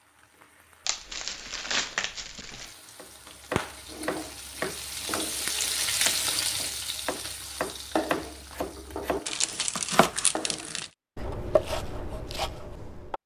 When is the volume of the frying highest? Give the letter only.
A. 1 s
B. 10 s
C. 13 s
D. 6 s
D.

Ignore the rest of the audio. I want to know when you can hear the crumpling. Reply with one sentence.
The crumpling can be heard from 0.8 to 2.8 s, from 5.8 to 6.8 s and from 9.2 to 10.9 s.